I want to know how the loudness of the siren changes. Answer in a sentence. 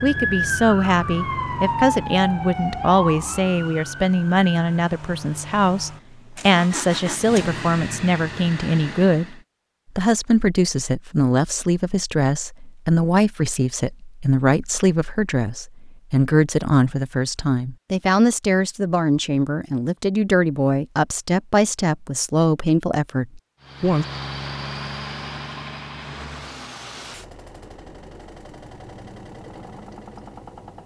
The loudness of the siren goes down.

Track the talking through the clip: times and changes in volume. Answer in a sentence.
The talking can be heard from 0.0 to 9.3 s, at a steady volume; and from 9.9 to 24.1 s, at a steady volume.